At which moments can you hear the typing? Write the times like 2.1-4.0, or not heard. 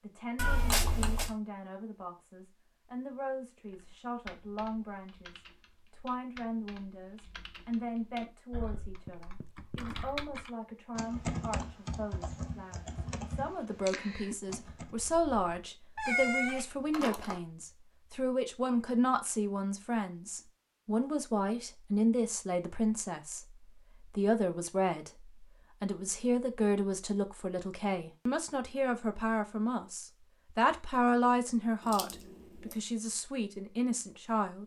3.6-14.9.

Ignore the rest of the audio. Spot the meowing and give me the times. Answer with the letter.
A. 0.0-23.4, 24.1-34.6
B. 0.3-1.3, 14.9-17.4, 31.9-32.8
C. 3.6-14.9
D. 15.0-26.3
B.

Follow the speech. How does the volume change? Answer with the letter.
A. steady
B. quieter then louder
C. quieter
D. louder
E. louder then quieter
D.